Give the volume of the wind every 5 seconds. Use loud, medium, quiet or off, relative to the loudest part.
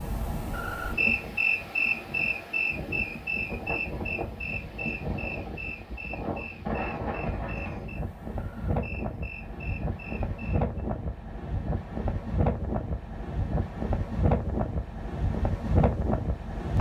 medium, medium, loud, loud.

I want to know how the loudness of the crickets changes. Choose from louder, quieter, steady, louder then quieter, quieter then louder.
quieter.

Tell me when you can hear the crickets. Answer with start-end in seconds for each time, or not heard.
0.0-10.7.